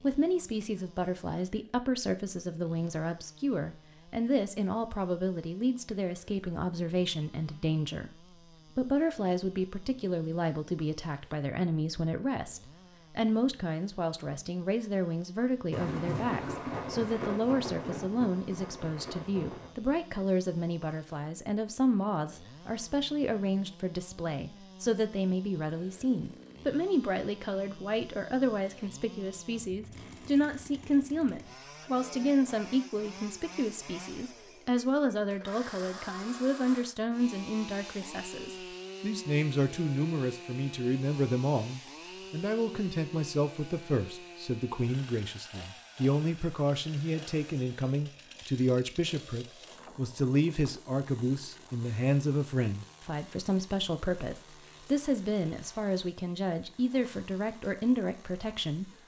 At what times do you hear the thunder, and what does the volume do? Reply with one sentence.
You can hear the thunder from 15.7 to 19.7 s, getting quieter.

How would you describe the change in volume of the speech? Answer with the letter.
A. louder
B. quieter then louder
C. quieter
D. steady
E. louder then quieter
D.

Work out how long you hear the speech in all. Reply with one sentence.
The speech can be heard for 59 seconds in total.